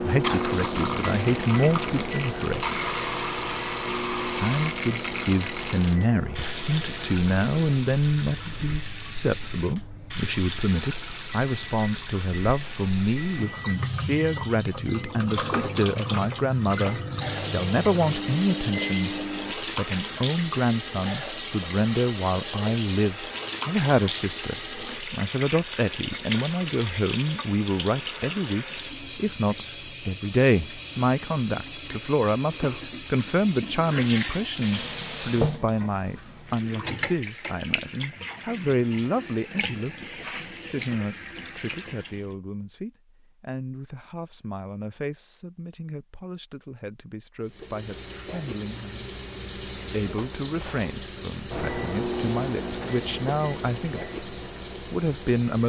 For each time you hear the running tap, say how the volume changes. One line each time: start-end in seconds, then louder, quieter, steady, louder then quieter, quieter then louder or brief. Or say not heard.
0.0-42.4 steady
47.4-55.6 steady.